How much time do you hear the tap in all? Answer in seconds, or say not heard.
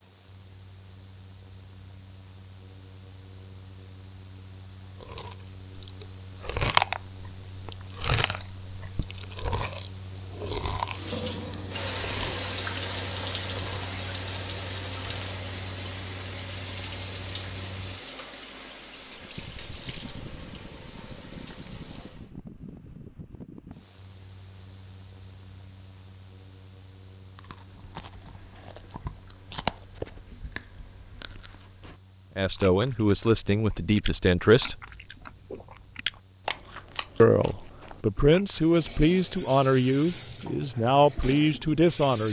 15 s.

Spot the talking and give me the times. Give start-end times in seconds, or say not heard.
32.4-34.8, 37.2-42.2.